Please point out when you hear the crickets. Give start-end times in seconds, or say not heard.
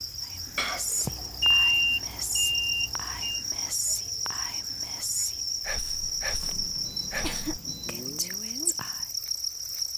0.0-9.9.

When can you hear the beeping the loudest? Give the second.
2 s.